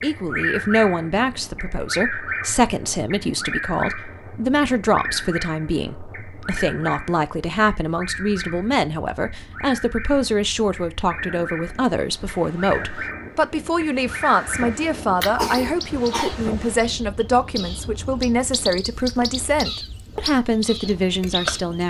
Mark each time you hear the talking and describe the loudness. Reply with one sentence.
The talking can be heard from 0.0 to 21.8 s, at a steady volume.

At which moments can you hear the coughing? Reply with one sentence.
The coughing can be heard from 15.3 to 16.3 s.